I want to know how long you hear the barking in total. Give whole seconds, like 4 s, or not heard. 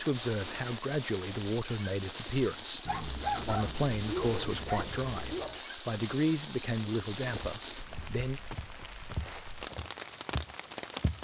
3 s.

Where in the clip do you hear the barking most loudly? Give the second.
3 s.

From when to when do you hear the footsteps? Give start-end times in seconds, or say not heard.
7.2-11.1.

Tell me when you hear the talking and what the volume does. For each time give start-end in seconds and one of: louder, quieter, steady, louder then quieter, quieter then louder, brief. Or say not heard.
0.0-8.4 steady.